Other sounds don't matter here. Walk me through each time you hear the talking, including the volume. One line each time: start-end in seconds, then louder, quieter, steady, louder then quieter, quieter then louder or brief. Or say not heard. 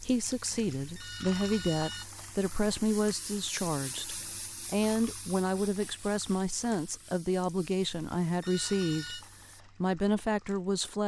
0.0-9.2 steady
9.8-11.0 brief.